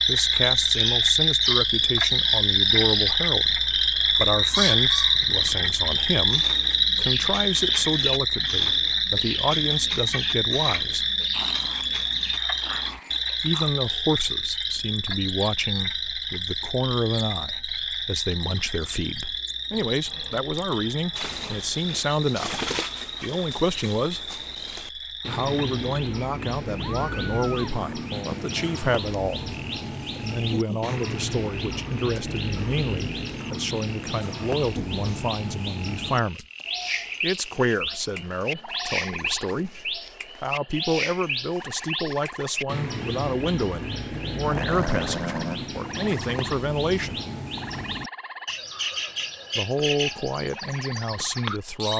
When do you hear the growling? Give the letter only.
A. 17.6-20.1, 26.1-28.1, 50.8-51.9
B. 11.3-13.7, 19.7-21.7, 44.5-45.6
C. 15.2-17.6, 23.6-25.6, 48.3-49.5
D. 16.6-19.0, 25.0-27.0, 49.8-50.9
B.